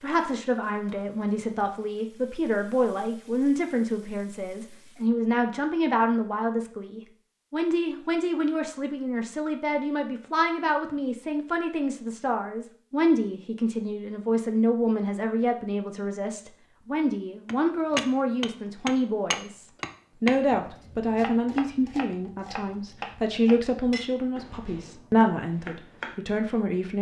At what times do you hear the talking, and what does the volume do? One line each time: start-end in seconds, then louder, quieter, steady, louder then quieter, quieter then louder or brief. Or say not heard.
0.0-26.9 steady.